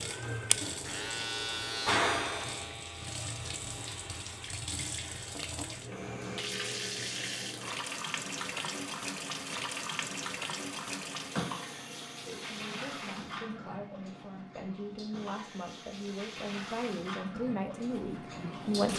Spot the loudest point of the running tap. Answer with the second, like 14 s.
2 s.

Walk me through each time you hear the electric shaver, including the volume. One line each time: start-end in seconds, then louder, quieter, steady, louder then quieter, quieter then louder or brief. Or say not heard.
0.0-5.7 quieter.